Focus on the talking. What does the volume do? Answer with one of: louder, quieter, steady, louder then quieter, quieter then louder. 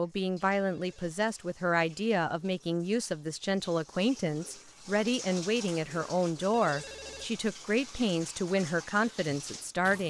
steady.